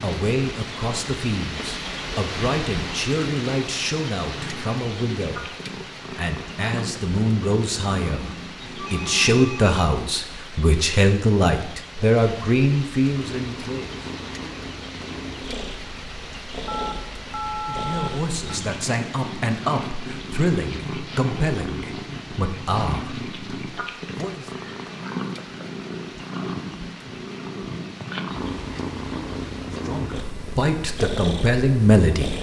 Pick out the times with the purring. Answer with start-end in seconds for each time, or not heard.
0.0-9.4, 13.1-32.3.